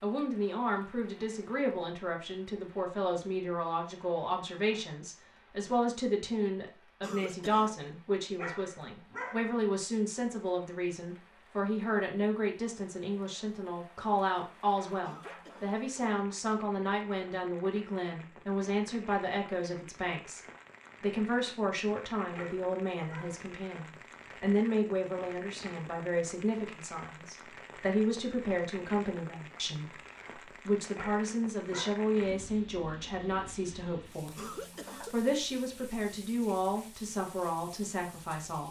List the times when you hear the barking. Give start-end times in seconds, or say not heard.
8.3-9.6, 22.3-23.5, 30.9-32.0.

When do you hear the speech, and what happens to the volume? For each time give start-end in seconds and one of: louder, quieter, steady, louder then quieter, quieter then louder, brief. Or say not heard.
0.0-20.4 steady
21.0-38.6 steady.